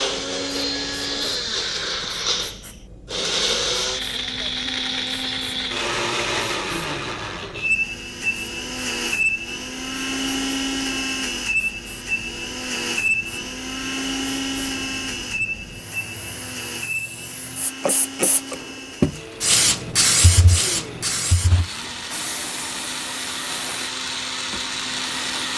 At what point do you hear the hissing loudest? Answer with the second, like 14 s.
20 s.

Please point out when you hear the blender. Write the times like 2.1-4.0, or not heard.
0.0-25.5.